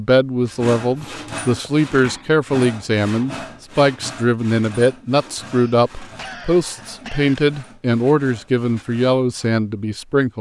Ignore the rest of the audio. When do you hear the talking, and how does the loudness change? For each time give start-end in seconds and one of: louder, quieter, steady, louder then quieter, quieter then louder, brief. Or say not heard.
0.0-10.3 steady.